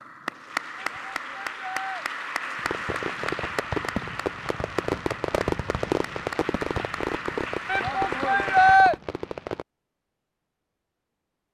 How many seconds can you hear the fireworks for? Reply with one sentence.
The fireworks can be heard for 7 seconds in total.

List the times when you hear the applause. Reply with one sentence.
You can hear the applause from 0.0 to 8.8 s.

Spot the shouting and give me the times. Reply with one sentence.
The shouting can be heard from 0.8 to 2.0 s and from 7.7 to 8.9 s.